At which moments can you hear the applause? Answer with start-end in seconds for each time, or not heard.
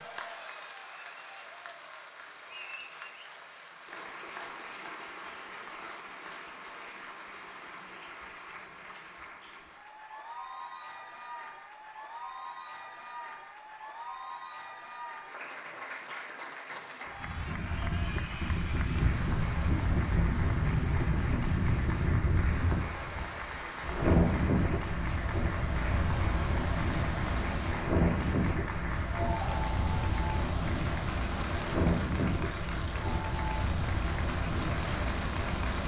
0.0-35.8.